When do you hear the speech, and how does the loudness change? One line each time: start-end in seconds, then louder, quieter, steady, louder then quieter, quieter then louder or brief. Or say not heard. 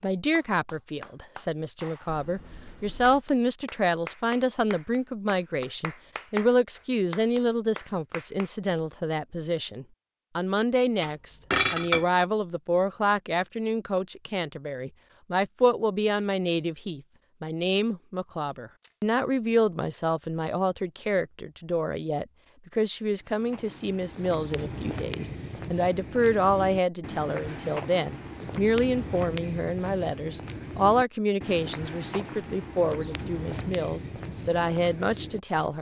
0.0-35.7 steady.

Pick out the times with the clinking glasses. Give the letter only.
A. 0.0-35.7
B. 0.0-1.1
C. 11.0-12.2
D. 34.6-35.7
C.